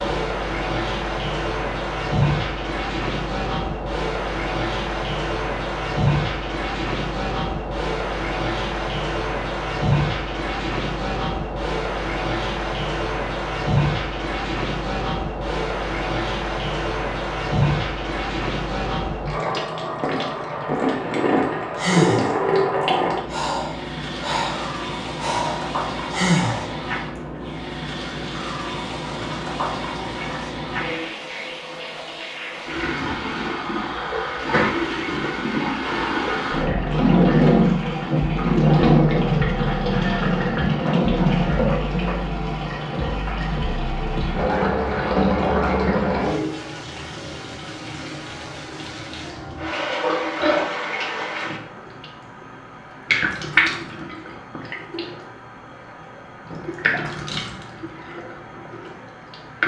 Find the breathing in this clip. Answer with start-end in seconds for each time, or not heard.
21.8-27.2.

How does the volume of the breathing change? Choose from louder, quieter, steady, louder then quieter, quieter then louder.
louder.